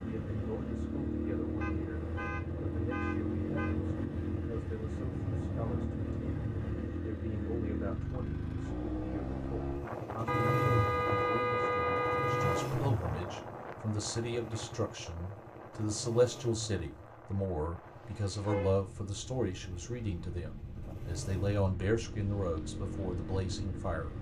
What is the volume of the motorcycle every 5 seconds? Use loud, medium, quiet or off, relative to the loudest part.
loud, loud, loud, quiet, medium.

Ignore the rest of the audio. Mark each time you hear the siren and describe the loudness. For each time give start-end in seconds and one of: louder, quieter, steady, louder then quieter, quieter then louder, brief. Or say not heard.
not heard.